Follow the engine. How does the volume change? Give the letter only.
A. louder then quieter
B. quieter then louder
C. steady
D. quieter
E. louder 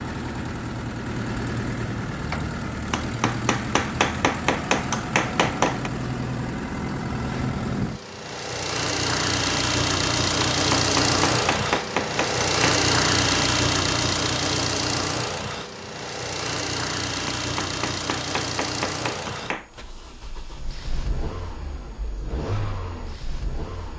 A.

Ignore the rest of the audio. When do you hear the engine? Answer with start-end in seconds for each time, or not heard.
0.0-23.9.